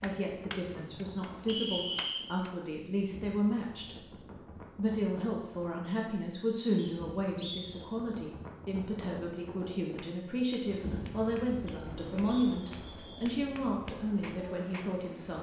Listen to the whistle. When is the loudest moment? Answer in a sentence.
The volume of the whistle peaks at 2 seconds.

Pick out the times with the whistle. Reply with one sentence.
The whistle can be heard from 1.4 to 2.2 s, from 6.8 to 7.8 s and from 11.7 to 13.3 s.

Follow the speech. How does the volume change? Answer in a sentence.
The loudness of the speech stays about the same.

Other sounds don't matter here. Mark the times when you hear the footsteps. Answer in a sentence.
You can't hear the footsteps here.